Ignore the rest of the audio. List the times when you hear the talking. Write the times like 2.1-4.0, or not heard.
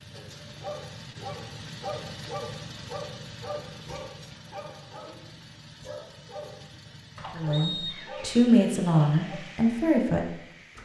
7.3-10.3.